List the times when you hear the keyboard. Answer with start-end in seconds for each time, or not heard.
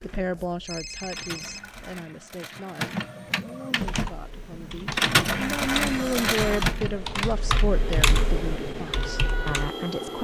3.8-9.8.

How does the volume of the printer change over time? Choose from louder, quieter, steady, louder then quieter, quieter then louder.
louder then quieter.